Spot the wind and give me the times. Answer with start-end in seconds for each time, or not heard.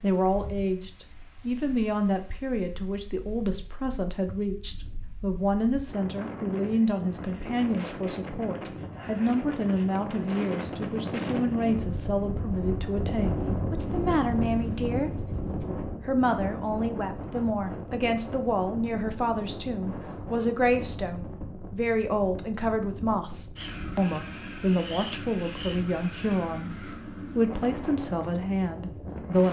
0.0-29.4.